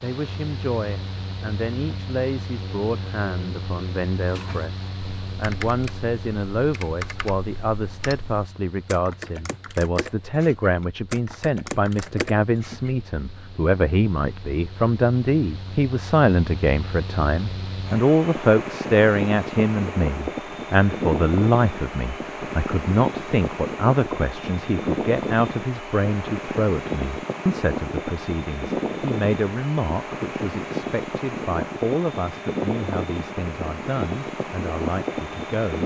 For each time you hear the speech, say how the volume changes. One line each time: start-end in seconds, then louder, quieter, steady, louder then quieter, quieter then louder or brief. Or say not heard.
0.0-35.8 louder then quieter.